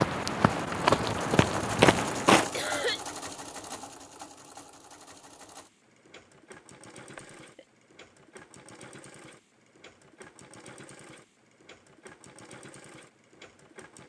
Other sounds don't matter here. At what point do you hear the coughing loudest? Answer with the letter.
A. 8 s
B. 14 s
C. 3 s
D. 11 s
C.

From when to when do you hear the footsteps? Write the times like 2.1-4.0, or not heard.
0.0-2.5.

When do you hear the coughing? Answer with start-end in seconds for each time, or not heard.
2.5-3.0, 7.2-7.7.